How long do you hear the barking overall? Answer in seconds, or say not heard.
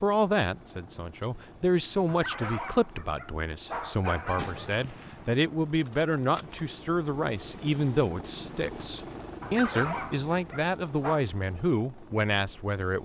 4 s.